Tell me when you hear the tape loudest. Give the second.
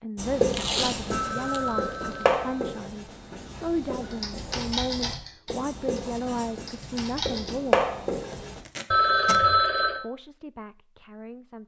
1 s.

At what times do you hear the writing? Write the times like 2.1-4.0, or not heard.
0.1-8.6.